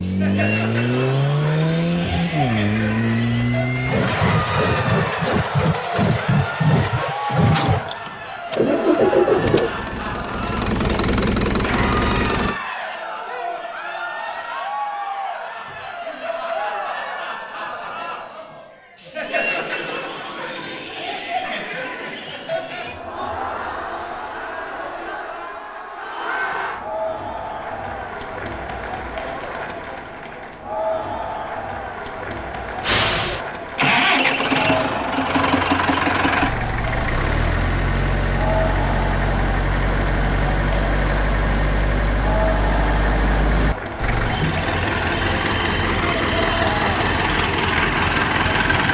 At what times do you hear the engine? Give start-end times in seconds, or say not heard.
0.0-12.6, 32.8-48.8.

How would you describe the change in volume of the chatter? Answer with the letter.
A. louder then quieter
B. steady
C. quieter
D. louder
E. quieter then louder
B.